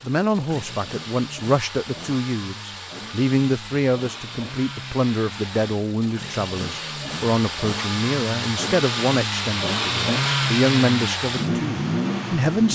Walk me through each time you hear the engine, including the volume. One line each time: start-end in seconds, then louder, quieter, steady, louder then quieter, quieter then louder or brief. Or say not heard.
0.0-12.7 louder.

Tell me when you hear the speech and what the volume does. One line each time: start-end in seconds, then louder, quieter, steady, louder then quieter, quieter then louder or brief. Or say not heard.
0.0-12.7 steady.